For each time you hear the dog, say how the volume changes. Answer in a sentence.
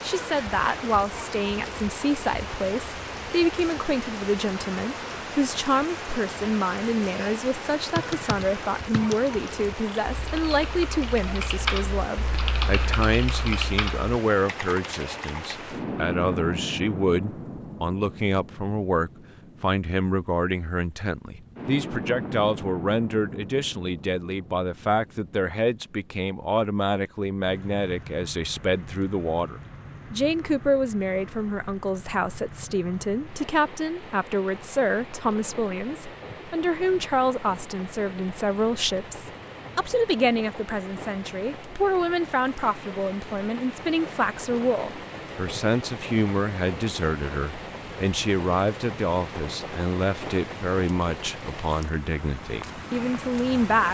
The dog can't be heard in this clip.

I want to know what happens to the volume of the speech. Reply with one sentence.
The loudness of the speech stays about the same.